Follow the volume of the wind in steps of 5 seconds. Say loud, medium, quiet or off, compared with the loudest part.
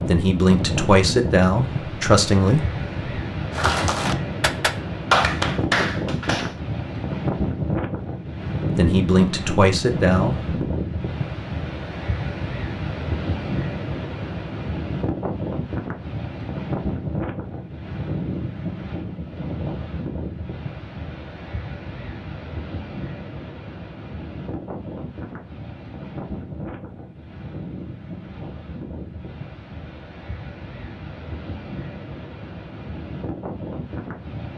loud, loud, loud, loud, medium, medium, medium.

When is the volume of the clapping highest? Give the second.
5 s.